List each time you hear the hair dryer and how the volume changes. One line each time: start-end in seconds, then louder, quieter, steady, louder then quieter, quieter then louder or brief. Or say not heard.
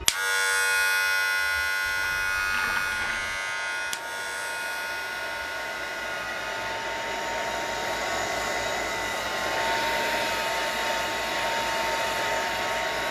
0.0-13.0 louder.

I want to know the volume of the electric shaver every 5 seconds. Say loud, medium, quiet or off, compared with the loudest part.
loud, medium, off.